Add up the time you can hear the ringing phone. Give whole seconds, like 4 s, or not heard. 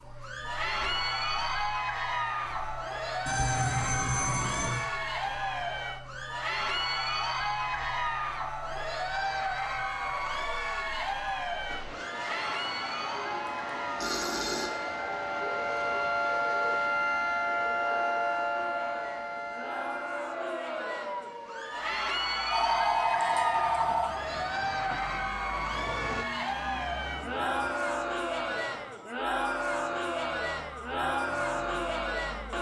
4 s.